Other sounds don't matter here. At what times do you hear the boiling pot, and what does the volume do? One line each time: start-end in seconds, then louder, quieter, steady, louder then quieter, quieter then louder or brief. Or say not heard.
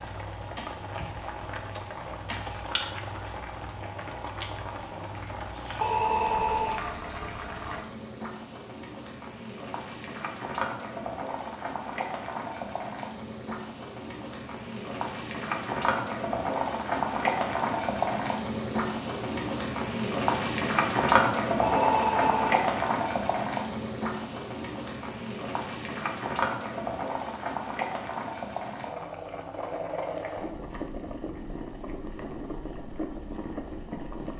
0.0-34.3 louder then quieter.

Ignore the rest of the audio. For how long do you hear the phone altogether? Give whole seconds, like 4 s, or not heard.
2 s.